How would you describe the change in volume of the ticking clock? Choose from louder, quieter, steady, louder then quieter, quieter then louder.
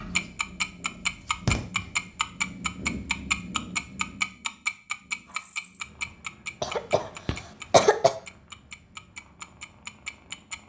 quieter.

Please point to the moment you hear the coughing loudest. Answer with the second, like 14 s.
8 s.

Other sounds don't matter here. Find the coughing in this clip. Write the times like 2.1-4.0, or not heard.
6.6-8.1.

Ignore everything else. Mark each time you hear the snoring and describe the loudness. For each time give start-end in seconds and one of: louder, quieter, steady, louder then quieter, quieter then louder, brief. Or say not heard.
not heard.